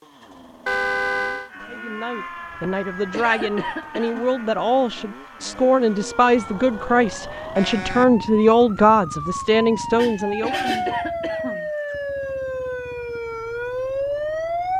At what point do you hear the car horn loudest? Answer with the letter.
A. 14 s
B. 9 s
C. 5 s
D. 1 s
D.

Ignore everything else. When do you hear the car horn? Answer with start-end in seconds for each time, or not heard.
0.7-1.5, 7.5-8.2, 9.9-10.9.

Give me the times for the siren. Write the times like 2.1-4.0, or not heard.
1.5-14.7.